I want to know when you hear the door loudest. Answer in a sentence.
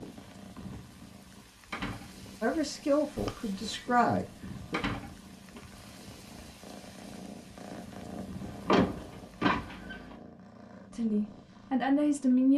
The volume of the door peaks at 9 seconds.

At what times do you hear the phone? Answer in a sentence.
The phone can be heard from 3.1 to 3.9 s.